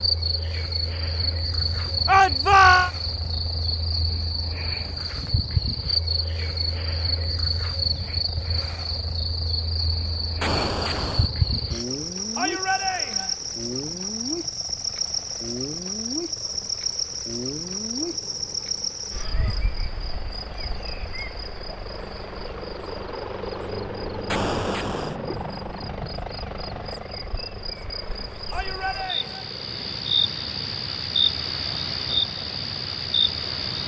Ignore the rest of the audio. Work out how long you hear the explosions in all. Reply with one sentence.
The explosions can be heard for 2 seconds in total.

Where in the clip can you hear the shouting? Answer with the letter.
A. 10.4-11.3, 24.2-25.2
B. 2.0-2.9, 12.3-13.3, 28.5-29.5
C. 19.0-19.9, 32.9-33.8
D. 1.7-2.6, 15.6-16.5
B.